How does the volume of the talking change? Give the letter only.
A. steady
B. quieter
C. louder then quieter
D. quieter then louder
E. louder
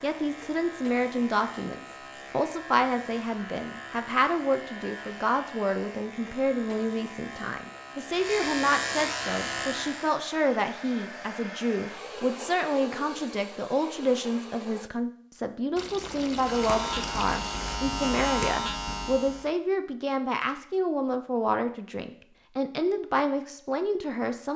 A.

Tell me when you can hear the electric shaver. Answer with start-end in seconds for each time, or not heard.
0.0-10.2, 16.3-19.5.